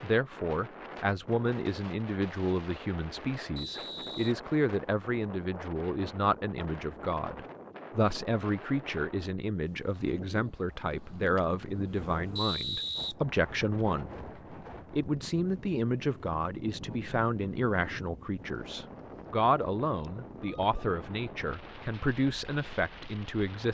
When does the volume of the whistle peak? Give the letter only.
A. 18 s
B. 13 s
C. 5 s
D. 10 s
B.